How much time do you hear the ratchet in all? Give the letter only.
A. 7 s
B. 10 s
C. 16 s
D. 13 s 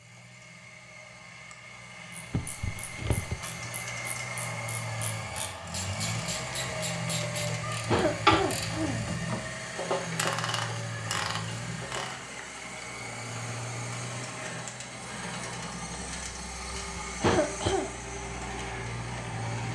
B.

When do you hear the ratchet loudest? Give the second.
8 s.